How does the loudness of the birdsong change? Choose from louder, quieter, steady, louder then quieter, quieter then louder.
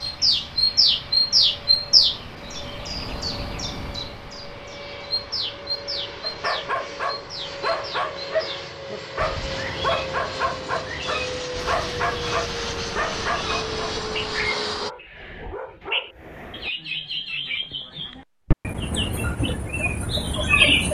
quieter then louder.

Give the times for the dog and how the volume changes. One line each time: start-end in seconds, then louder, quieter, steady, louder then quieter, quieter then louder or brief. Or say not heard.
6.2-16.7 quieter.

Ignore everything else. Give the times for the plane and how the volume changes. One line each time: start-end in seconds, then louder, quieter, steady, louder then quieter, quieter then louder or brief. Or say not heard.
0.0-14.9 louder.